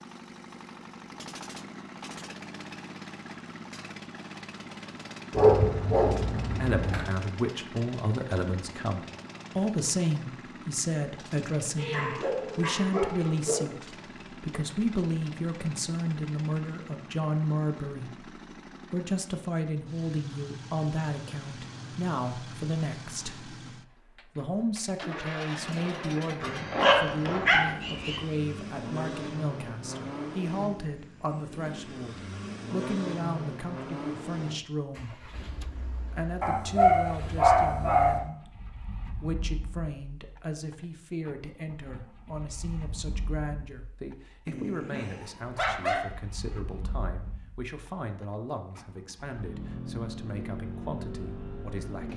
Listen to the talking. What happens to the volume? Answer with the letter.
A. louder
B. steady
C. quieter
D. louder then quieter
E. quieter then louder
C.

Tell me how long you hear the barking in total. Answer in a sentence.
The barking can be heard for 9 seconds in total.